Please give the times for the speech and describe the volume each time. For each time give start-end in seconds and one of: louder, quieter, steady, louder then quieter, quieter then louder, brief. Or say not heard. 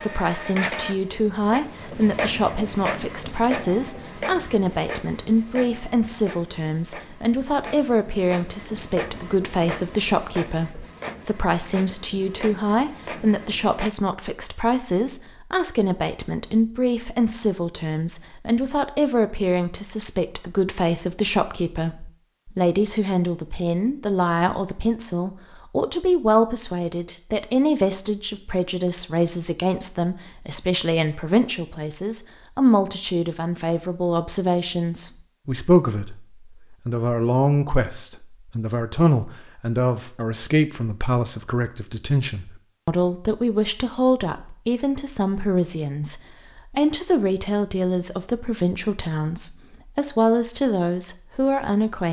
0.0-52.0 steady.